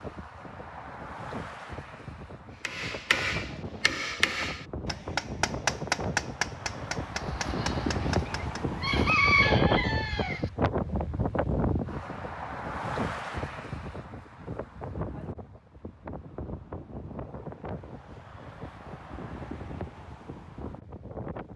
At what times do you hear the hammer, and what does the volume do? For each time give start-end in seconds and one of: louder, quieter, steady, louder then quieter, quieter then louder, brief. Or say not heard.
2.6-8.7 quieter.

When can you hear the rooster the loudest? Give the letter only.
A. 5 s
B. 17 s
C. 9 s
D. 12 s
C.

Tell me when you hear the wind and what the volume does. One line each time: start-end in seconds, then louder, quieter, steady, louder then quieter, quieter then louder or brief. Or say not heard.
0.0-21.5 louder then quieter.